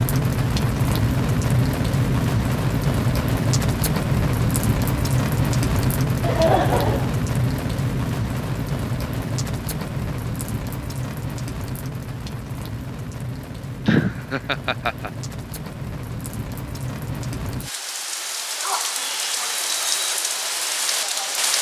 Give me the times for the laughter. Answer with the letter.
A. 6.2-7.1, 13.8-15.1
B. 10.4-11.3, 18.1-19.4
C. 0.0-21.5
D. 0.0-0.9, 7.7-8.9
A.